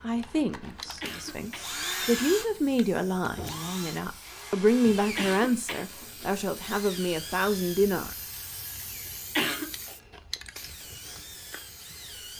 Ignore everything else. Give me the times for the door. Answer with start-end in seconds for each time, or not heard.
3.3-3.8.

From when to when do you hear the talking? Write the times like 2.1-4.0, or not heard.
0.0-8.2.